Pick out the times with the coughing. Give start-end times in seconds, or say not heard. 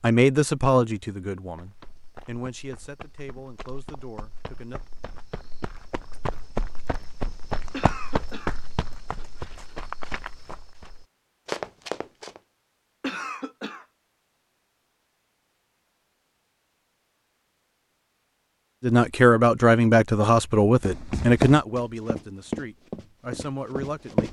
7.7-8.6, 13.0-13.8.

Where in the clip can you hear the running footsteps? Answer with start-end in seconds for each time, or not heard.
1.4-12.4, 20.8-24.2.